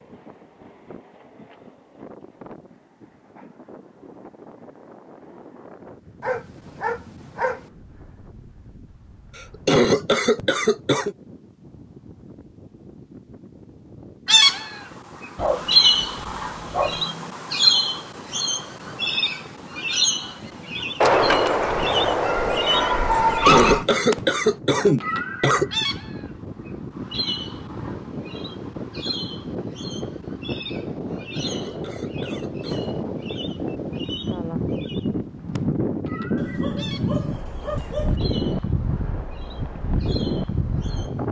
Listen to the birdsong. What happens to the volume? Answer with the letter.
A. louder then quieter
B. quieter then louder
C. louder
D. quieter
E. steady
D.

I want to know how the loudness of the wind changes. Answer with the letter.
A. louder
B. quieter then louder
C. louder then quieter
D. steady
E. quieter
A.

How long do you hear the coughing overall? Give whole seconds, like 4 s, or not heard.
6 s.